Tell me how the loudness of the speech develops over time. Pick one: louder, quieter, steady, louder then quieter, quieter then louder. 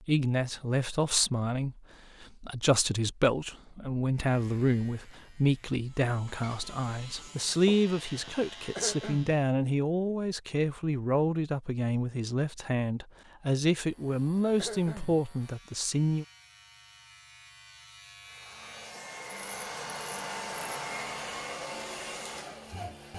steady.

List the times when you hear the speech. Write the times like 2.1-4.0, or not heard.
0.1-16.2.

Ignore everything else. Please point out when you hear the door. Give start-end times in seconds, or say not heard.
not heard.